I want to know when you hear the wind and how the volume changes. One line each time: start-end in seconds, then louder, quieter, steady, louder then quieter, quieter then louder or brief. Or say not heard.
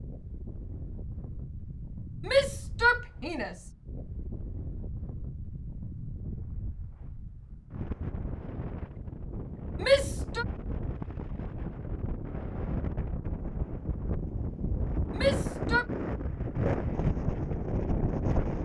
0.0-18.6 louder.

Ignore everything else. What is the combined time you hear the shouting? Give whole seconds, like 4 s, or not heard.
3 s.